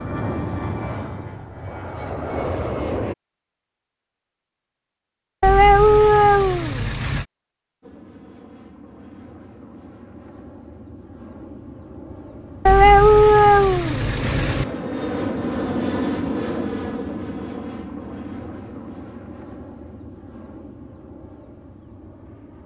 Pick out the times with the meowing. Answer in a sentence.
The meowing can be heard from 5.4 to 7.2 s and from 12.7 to 14.7 s.